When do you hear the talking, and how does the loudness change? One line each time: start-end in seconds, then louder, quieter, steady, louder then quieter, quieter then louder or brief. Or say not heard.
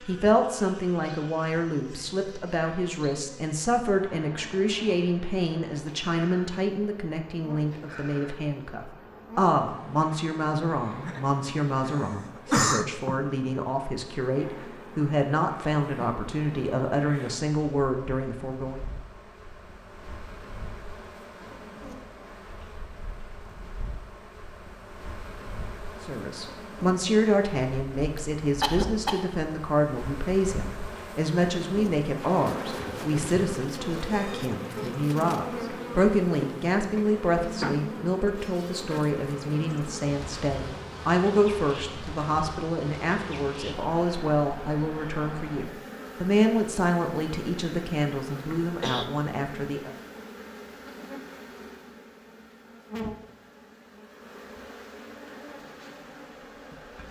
0.1-18.8 steady
26.0-49.9 steady.